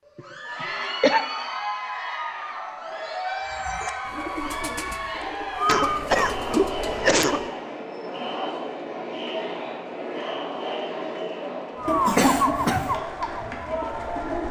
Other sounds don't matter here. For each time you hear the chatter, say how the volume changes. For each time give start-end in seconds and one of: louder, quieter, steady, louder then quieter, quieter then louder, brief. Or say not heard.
0.1-14.4 steady.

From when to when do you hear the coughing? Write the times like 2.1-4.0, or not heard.
0.1-1.2, 5.7-7.5, 11.8-13.0.